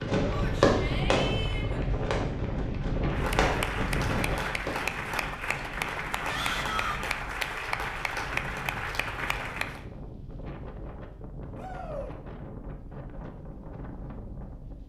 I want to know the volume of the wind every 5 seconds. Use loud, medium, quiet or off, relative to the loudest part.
loud, medium, medium.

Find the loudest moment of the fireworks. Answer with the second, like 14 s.
1 s.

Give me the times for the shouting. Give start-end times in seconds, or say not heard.
0.3-1.9, 6.2-7.0, 11.6-12.2.